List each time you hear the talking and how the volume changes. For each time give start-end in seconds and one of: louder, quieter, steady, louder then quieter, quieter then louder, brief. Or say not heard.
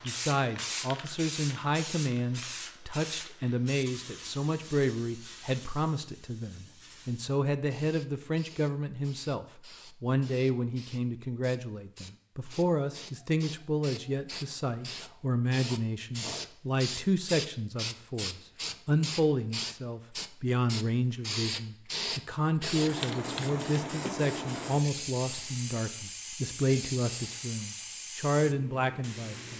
0.0-29.5 steady.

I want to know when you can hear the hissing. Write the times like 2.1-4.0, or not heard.
0.0-29.5.